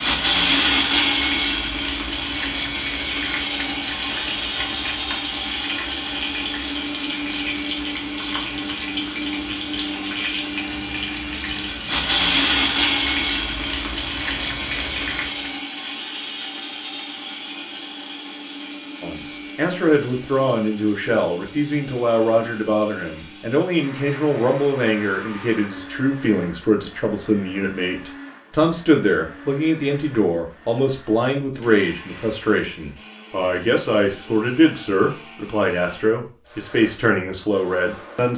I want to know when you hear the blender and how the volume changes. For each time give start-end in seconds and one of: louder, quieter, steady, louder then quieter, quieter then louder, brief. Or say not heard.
0.0-38.3 quieter.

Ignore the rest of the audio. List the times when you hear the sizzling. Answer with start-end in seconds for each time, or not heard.
0.1-15.6.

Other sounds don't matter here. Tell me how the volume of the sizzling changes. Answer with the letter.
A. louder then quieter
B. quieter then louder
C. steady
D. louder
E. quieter
C.